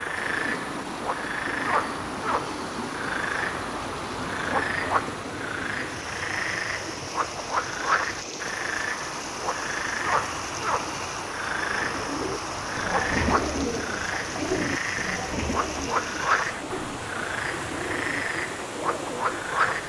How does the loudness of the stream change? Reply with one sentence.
The volume of the stream stays about the same.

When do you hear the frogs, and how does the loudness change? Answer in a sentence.
The frogs can be heard from 0.0 to 19.8 s, at a steady volume.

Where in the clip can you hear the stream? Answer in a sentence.
The stream can be heard from 0.0 to 19.8 s.